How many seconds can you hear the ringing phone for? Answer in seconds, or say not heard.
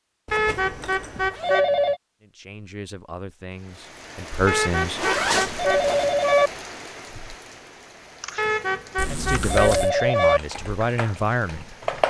6 s.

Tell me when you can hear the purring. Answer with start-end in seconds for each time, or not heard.
not heard.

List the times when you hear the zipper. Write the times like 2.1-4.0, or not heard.
0.2-1.6, 5.0-6.0, 8.9-9.9.